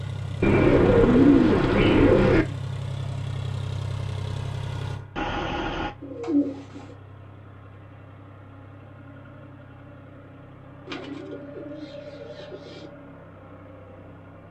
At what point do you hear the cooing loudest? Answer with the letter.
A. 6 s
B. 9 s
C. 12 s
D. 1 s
D.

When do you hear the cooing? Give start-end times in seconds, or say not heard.
0.4-2.5, 5.2-7.0, 10.8-12.9.